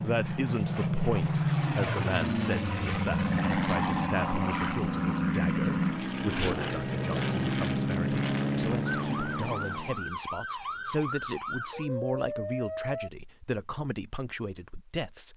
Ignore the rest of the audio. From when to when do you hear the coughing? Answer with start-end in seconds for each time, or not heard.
not heard.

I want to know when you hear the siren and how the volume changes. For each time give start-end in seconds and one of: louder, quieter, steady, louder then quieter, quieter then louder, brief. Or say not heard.
8.8-13.1 steady.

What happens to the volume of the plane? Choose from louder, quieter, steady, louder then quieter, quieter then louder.
steady.